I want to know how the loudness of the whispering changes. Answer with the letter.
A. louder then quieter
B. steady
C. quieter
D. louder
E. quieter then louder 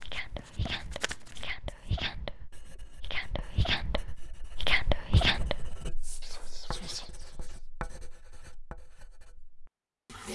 A.